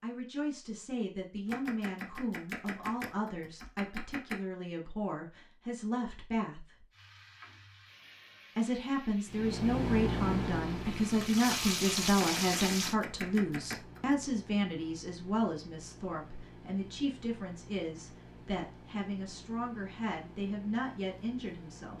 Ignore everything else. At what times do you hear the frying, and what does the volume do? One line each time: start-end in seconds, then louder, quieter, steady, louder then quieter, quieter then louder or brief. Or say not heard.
6.9-12.9 louder.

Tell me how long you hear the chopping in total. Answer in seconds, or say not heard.
5 s.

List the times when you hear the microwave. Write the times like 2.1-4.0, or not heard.
9.2-21.9.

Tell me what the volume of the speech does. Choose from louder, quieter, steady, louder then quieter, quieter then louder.
louder then quieter.